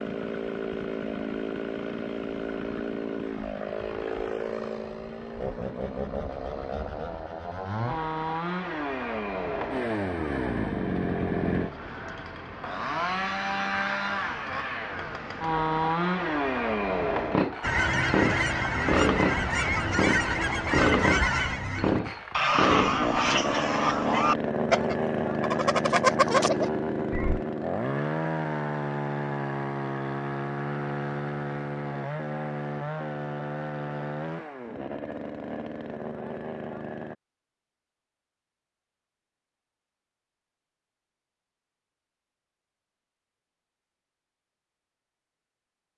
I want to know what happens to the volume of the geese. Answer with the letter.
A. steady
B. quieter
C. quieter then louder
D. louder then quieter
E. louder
A.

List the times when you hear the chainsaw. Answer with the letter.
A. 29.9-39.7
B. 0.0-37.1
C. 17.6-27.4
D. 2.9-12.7
B.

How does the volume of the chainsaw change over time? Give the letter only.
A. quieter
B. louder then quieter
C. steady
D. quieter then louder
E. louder
B.